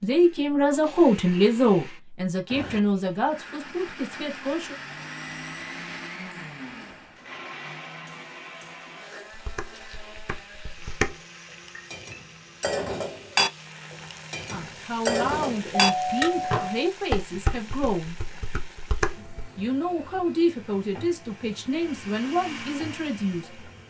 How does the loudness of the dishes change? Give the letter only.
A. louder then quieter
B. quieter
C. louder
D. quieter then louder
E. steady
A.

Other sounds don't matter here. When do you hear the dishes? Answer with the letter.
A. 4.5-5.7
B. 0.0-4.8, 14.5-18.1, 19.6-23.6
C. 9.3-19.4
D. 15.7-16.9
C.